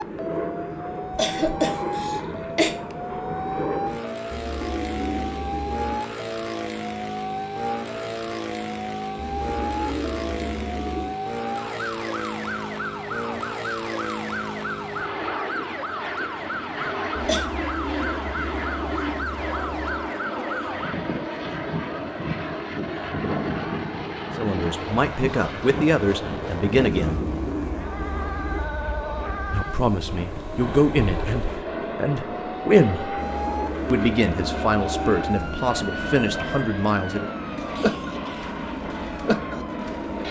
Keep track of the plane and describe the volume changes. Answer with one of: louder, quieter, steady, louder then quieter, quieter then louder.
steady.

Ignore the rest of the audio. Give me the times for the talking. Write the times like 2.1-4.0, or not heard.
24.4-27.2, 29.5-33.2, 33.9-37.3.